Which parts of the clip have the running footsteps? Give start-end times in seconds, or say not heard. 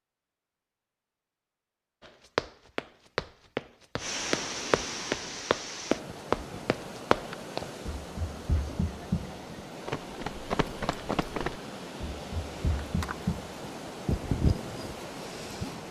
2.0-13.8.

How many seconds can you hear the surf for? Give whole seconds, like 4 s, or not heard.
12 s.